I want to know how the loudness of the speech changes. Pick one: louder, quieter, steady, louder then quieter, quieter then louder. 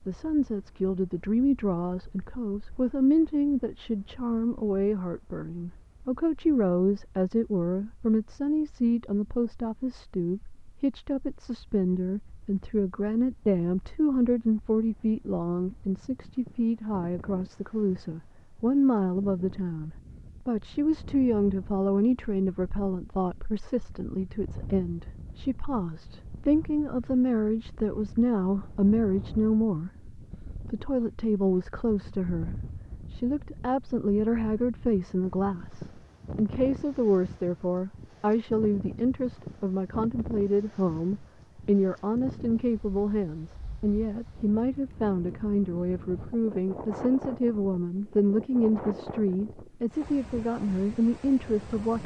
steady.